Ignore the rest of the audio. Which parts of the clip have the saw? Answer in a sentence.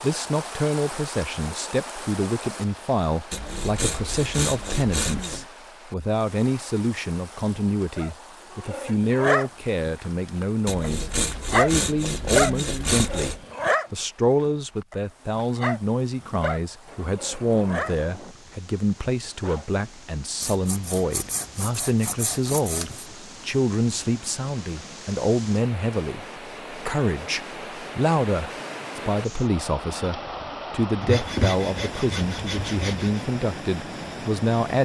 You can hear the saw from 3.3 to 5.5 s, from 10.7 to 13.4 s, from 20.4 to 23.1 s and from 31.0 to 33.2 s.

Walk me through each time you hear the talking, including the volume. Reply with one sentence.
The talking can be heard from 0.0 to 34.7 s, at a steady volume.